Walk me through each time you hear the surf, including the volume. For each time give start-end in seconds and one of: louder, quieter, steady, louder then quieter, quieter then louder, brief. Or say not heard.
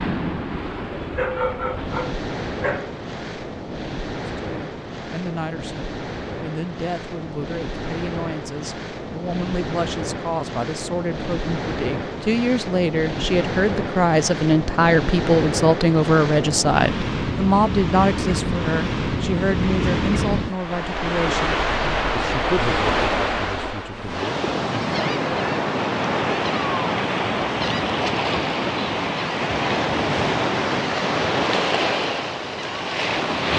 0.0-33.5 louder.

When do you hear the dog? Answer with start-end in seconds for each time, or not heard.
1.1-3.0.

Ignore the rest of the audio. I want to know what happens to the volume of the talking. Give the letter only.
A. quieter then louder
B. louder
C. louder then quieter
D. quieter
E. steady
C.